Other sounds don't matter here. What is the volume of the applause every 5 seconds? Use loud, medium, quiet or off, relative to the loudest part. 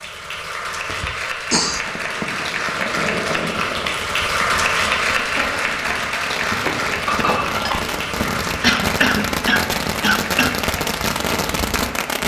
loud, loud, medium.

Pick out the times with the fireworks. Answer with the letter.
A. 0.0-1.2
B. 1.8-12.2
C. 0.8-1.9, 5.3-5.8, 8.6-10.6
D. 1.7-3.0
B.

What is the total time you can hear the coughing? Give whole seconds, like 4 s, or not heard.
3 s.